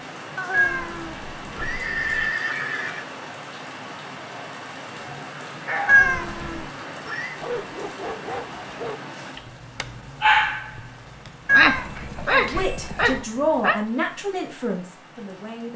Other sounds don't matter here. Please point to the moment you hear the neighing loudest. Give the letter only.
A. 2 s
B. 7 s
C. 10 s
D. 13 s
A.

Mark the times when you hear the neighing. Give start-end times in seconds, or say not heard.
0.3-3.1, 5.8-7.4, 11.7-13.2.